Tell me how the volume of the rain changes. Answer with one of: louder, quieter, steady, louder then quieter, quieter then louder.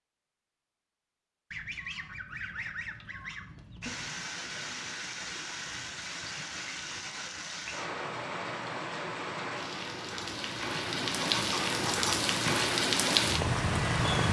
louder.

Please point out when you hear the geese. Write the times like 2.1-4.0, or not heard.
1.5-4.0, 10.7-12.6.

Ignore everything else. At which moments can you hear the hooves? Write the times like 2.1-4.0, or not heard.
not heard.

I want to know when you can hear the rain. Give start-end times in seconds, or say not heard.
3.8-14.2.